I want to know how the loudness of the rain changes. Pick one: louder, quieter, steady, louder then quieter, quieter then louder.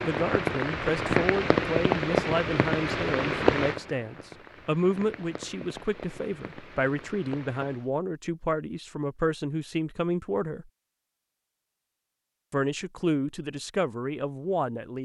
quieter.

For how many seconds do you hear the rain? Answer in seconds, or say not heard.
8 s.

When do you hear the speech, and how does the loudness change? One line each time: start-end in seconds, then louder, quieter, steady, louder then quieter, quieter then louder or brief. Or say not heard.
0.0-10.7 steady
12.5-14.9 brief.